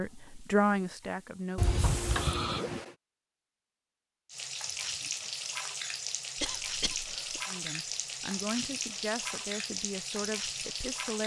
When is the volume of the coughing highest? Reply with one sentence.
The volume of the coughing peaks at 2 seconds.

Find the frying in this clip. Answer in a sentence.
The frying can be heard from 0.0 to 2.4 s and from 4.2 to 11.2 s.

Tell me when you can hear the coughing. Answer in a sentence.
You can hear the coughing from 1.6 to 3.0 s and from 6.3 to 7.4 s.